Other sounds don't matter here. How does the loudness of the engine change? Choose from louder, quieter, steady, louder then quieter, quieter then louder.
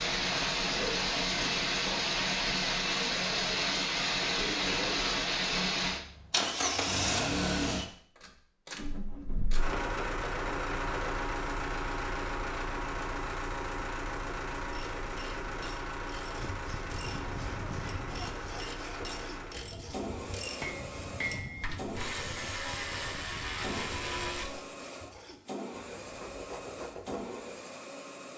quieter.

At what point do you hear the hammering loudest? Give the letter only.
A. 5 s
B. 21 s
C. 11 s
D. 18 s
B.